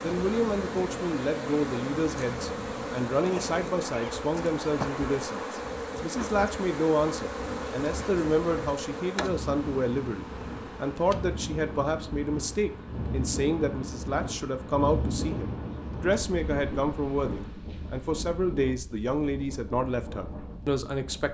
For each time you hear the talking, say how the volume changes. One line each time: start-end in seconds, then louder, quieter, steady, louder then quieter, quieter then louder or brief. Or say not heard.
0.0-21.2 steady.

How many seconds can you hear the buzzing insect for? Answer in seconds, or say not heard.
18 s.